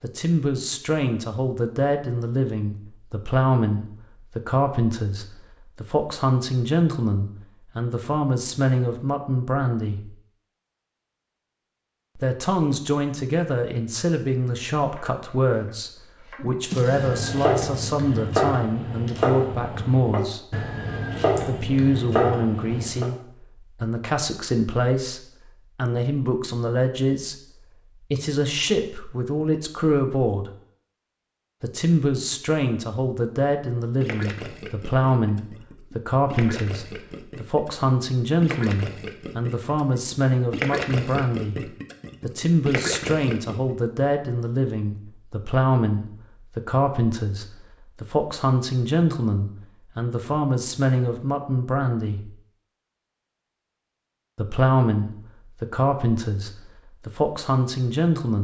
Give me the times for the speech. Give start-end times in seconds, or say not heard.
0.0-10.1, 12.2-20.6, 21.4-30.5, 31.6-52.3, 54.4-58.3.